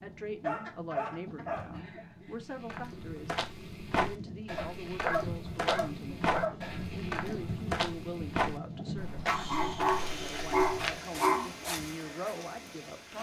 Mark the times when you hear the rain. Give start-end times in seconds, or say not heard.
0.0-13.1.